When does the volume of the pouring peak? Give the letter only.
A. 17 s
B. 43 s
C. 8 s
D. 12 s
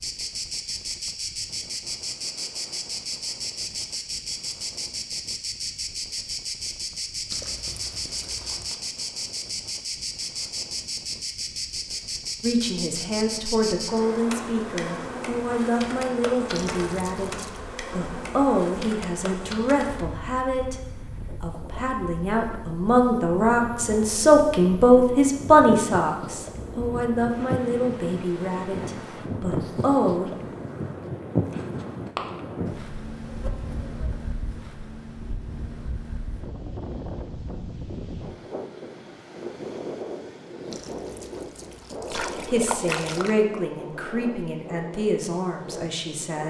B.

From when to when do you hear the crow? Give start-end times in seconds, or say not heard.
not heard.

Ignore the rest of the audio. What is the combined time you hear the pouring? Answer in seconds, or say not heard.
5 s.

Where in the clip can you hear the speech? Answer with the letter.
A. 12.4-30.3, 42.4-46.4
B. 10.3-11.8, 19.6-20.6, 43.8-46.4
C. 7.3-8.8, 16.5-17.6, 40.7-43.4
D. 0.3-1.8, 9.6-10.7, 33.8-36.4
A.